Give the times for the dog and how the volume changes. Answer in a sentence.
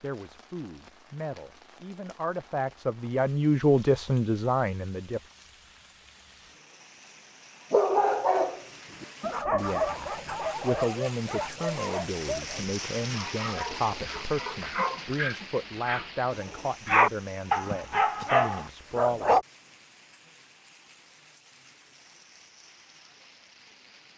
You can hear the dog from 7.7 to 19.4 s, getting quieter then louder.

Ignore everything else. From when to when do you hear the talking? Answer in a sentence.
You can hear the talking from 0.0 to 5.2 s and from 9.4 to 19.4 s.